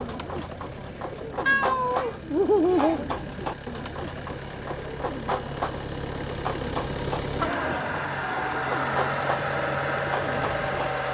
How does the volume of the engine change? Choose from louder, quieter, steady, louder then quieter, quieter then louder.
louder.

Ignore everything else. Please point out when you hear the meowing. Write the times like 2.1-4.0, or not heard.
1.4-3.1, 7.4-8.0.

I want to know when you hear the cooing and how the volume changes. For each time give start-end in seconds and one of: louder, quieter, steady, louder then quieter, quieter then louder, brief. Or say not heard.
0.0-10.9 steady.